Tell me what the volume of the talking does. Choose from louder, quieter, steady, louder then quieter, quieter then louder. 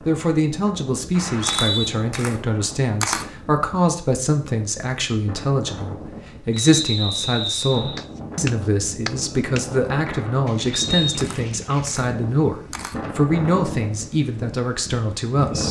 steady.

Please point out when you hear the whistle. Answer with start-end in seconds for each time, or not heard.
1.1-1.9, 6.5-8.0, 10.7-11.3.